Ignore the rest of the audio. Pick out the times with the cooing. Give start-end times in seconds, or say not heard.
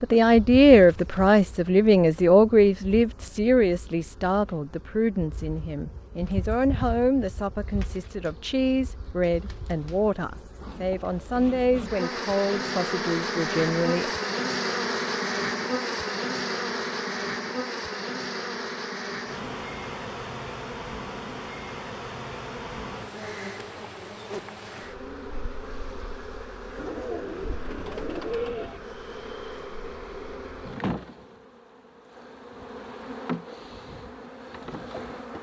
26.8-28.8.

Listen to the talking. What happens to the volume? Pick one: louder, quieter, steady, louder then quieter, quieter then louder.
quieter.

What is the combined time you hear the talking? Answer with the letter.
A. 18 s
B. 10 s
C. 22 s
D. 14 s
D.